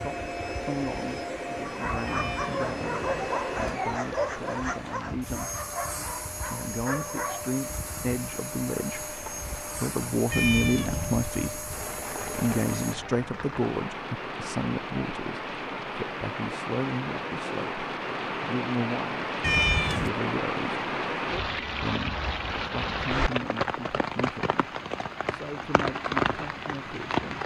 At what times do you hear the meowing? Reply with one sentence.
The meowing can be heard from 2.0 to 3.4 s, from 10.3 to 11.2 s and from 19.4 to 20.1 s.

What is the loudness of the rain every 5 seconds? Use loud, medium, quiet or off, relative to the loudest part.
quiet, quiet, medium, loud, loud, loud.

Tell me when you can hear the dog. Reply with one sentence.
You can hear the dog from 1.6 to 7.5 s.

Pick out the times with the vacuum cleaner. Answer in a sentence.
The vacuum cleaner can be heard from 0.0 to 12.9 s.